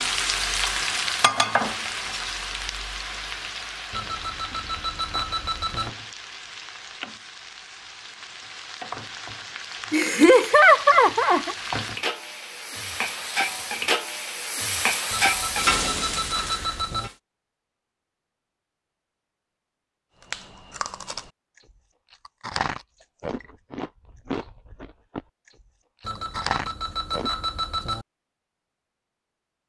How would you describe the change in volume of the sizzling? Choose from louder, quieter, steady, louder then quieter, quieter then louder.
quieter then louder.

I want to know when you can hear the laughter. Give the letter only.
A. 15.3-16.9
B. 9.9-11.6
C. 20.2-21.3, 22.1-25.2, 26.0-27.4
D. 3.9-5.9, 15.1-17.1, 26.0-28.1
B.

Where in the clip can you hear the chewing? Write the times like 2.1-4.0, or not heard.
20.2-21.3, 22.1-25.2, 26.0-27.4.